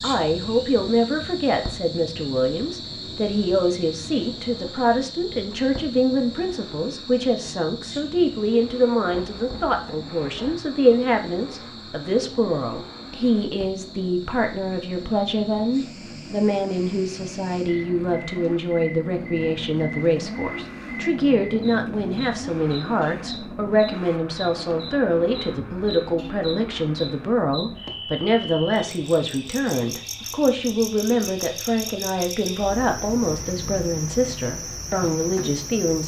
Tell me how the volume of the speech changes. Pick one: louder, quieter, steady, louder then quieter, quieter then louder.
steady.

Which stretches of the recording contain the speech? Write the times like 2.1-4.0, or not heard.
0.0-36.0.